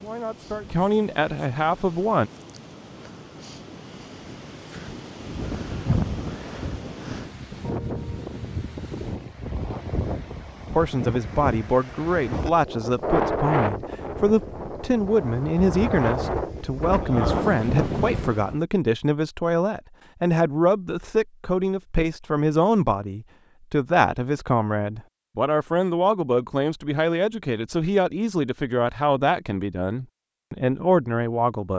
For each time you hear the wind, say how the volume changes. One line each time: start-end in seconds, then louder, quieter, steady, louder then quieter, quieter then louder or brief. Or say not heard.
0.0-18.6 louder.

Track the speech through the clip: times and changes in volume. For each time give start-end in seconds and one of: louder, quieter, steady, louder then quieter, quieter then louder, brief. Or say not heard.
0.0-2.3 brief
10.7-31.7 steady.